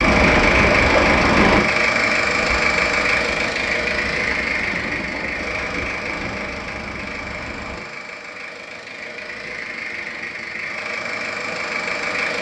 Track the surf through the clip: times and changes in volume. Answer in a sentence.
You can hear the surf from 0.0 to 7.8 s, getting quieter.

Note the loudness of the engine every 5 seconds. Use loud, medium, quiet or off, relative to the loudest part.
loud, medium, medium.